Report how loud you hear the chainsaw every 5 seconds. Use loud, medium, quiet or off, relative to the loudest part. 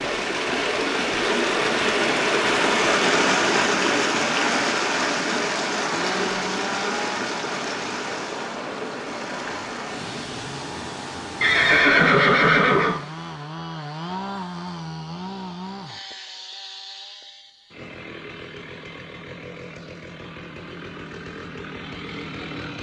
off, loud, loud, loud, loud.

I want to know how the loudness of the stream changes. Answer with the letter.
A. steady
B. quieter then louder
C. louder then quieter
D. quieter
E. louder
D.